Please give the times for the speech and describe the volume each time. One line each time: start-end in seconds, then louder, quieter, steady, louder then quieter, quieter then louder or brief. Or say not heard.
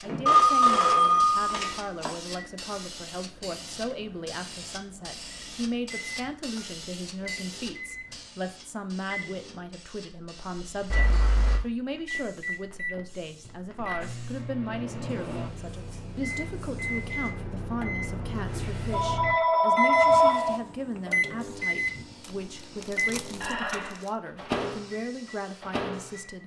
0.0-26.4 steady.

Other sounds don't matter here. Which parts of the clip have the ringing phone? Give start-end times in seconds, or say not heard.
0.2-2.1, 10.9-11.6, 18.9-20.6.